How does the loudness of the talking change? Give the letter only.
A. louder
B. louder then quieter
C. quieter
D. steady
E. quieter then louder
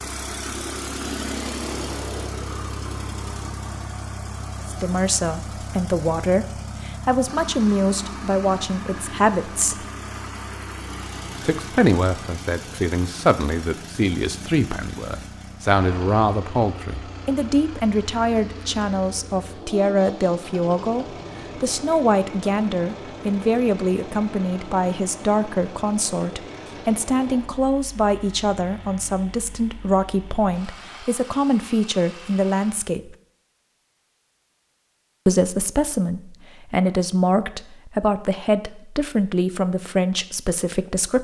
D.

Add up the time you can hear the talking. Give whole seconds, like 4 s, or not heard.
33 s.